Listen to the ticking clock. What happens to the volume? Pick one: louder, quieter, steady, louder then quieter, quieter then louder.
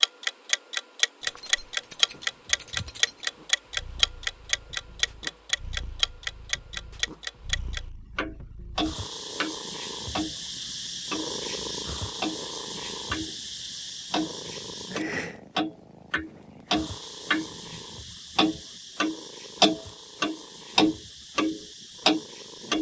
quieter then louder.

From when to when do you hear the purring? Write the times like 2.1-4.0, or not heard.
2.5-22.7.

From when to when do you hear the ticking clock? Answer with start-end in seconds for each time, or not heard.
0.0-13.4, 14.1-22.7.